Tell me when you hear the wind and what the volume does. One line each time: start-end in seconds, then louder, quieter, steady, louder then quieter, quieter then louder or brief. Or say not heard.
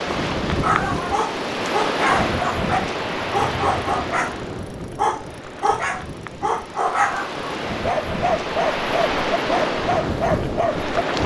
0.0-11.2 quieter then louder.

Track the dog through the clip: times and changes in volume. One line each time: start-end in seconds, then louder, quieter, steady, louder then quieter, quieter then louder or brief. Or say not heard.
0.5-10.9 steady.